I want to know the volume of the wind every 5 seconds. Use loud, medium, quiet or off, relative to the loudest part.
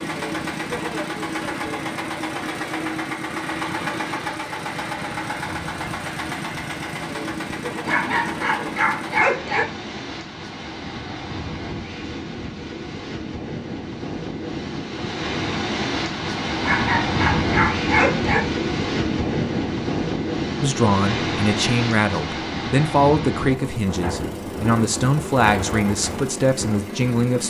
quiet, quiet, medium, loud, loud, medium.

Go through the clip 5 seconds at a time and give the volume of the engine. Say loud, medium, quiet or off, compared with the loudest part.
loud, loud, off, off, medium, medium.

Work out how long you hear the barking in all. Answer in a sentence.
You can hear the barking for 4 seconds altogether.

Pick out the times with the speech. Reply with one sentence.
The speech can be heard from 20.6 to 27.4 s.